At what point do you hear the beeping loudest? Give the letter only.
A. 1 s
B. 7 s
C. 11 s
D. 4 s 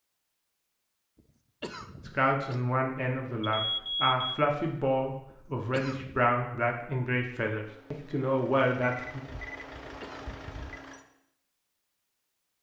D.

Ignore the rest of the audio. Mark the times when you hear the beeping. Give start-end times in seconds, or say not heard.
3.4-4.4, 8.8-10.8.